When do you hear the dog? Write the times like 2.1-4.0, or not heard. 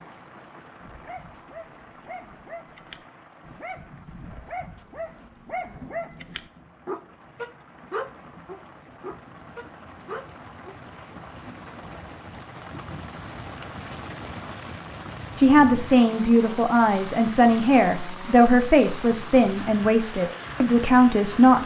0.8-10.8.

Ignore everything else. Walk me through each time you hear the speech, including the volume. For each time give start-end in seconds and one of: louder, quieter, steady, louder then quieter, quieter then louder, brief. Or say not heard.
15.3-21.6 steady.